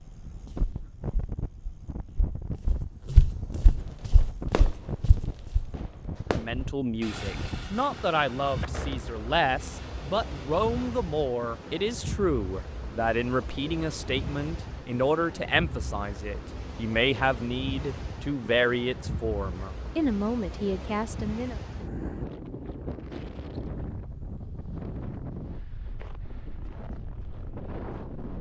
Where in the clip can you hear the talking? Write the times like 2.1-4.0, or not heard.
6.3-21.6.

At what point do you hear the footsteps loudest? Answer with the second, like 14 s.
3 s.